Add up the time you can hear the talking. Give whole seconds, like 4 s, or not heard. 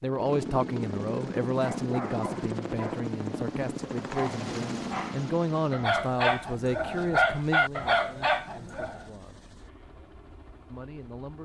10 s.